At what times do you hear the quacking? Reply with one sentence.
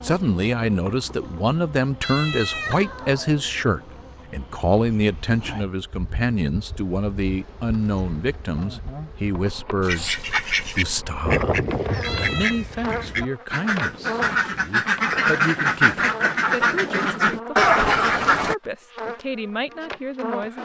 The quacking can be heard from 9.8 to 18.6 s.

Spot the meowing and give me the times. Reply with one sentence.
The meowing can be heard from 2.0 to 3.7 s and from 12.0 to 12.7 s.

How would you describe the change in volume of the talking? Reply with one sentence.
The volume of the talking goes down.